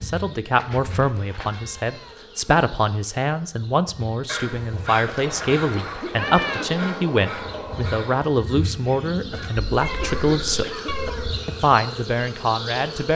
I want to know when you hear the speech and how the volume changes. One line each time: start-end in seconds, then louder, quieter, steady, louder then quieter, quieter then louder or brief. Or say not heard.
0.0-10.8 steady
11.4-13.1 brief.